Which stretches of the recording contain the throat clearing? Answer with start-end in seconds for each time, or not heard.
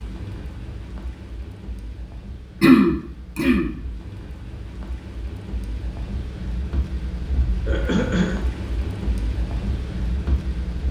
2.6-3.7, 7.7-8.4.